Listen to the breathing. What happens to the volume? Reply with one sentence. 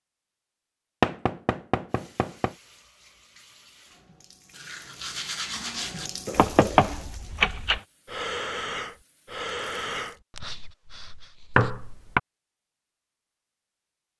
The loudness of the breathing goes up, then down.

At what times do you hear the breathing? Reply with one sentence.
You can hear the breathing from 6.3 to 11.7 s.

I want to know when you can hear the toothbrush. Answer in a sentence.
The toothbrush can be heard from 4.5 to 6.1 s.